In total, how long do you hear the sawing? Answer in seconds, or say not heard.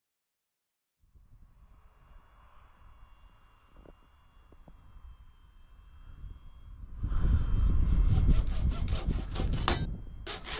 3 s.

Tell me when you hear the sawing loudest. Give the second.
10 s.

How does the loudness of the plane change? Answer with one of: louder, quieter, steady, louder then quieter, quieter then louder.
louder.